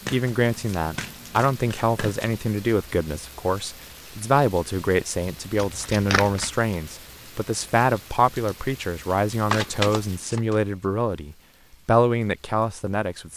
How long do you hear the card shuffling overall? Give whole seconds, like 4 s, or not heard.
4 s.